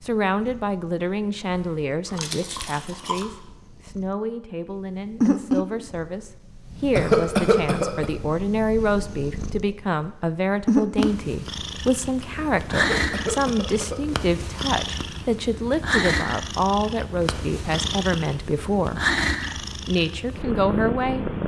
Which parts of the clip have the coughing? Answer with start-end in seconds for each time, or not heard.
7.0-8.1, 12.7-14.0.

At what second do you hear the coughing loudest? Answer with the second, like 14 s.
7 s.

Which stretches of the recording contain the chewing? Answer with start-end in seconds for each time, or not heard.
1.5-3.2.